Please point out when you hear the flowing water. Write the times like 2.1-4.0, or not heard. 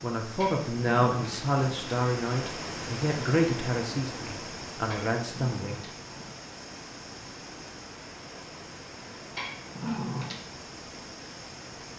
0.0-11.9.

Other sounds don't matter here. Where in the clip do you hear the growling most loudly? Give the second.
10 s.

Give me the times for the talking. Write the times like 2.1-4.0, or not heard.
0.0-5.8.